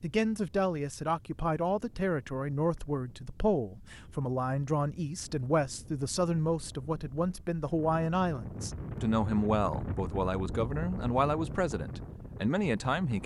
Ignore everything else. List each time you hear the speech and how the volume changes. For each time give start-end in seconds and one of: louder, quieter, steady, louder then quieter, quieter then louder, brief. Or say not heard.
0.0-13.2 steady.